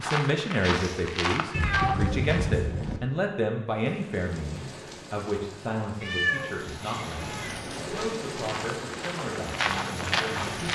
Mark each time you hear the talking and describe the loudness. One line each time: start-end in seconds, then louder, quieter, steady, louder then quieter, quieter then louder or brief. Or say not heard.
0.0-10.7 quieter.